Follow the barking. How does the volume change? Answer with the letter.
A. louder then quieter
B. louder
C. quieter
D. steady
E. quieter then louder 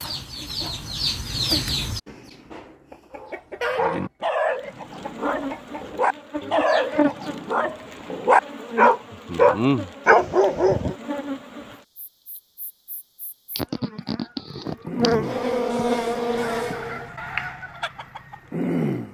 B.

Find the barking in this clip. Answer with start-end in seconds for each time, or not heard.
3.1-10.9.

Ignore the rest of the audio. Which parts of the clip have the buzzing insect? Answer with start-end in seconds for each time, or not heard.
4.5-17.1.